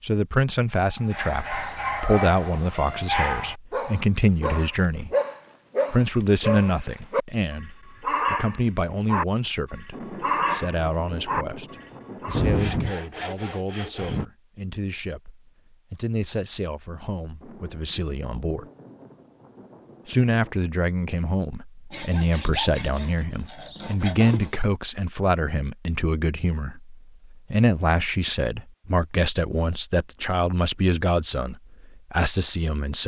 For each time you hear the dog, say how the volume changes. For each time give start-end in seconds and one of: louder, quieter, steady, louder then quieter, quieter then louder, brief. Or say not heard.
0.9-12.4 steady.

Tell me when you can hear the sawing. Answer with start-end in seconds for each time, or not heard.
12.3-14.2, 21.9-24.5.